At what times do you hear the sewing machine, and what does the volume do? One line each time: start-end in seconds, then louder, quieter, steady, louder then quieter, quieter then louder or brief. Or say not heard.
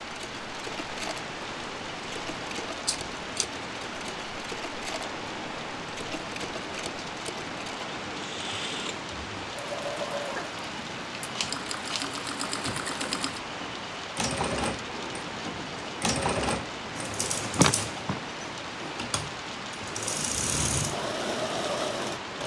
0.0-22.4 louder.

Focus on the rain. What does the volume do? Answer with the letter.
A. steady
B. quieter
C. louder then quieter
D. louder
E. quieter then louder
A.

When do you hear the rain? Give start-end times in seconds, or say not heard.
0.0-22.4.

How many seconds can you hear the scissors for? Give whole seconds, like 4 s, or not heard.
3 s.